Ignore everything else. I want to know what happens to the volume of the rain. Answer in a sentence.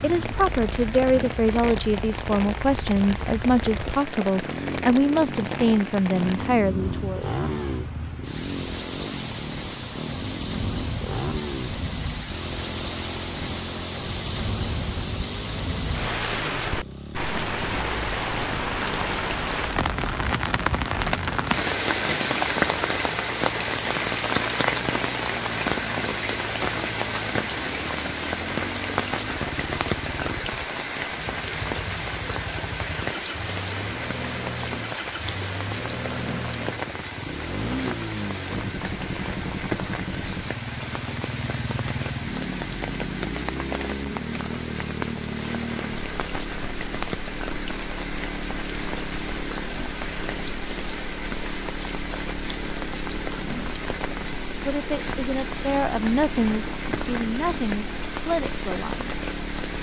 The volume of the rain goes up, then down.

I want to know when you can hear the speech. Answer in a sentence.
You can hear the speech from 0.0 to 7.2 s and from 54.6 to 59.1 s.